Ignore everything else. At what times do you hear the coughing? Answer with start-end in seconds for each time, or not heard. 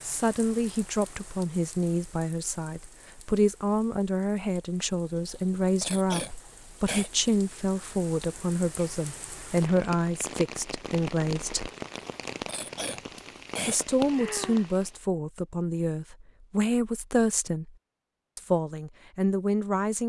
5.2-7.1, 11.9-13.8.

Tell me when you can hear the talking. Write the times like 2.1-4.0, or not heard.
0.0-11.7, 13.7-17.7, 18.4-20.0.